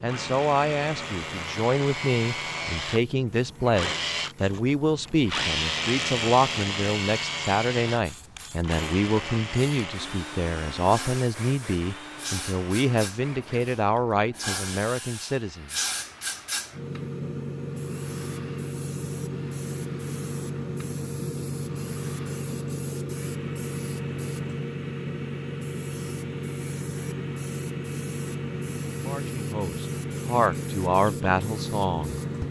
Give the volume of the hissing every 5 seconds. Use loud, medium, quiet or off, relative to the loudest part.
quiet, quiet, medium, loud, loud, loud, loud.